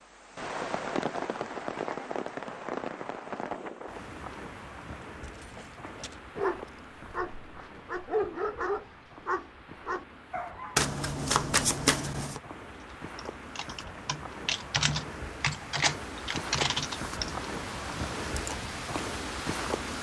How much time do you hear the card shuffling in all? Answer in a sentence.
You can hear the card shuffling for 2 seconds altogether.